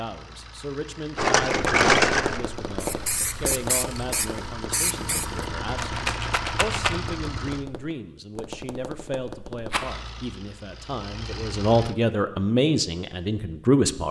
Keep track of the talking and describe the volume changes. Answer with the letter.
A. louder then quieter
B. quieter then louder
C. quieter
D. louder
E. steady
D.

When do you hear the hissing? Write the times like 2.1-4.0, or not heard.
2.8-5.5.